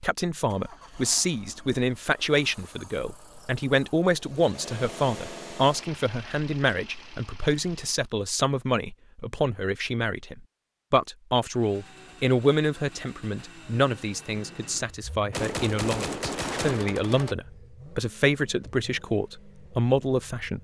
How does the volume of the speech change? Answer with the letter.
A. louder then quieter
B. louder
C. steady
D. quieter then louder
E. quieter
C.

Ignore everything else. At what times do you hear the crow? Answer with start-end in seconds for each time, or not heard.
not heard.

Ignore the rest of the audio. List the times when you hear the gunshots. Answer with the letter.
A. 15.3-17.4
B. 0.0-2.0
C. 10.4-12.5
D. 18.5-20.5
A.